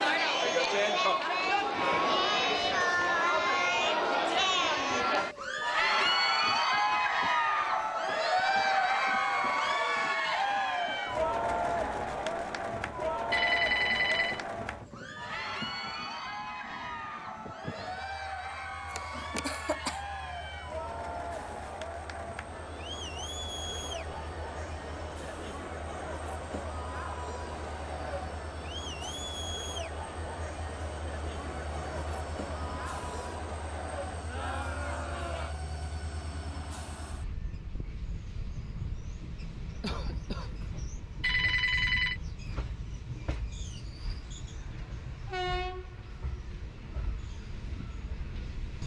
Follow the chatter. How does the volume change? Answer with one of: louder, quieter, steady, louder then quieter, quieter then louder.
quieter.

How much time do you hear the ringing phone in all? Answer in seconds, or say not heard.
2 s.